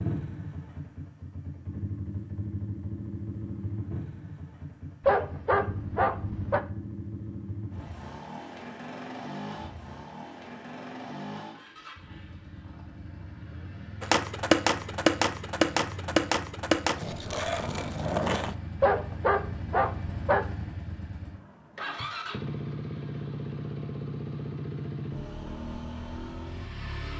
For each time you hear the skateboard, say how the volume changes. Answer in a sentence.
The skateboard can be heard from 14.0 to 18.6 s, getting quieter.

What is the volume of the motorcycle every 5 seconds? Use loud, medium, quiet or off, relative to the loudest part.
loud, loud, medium, medium, loud, loud.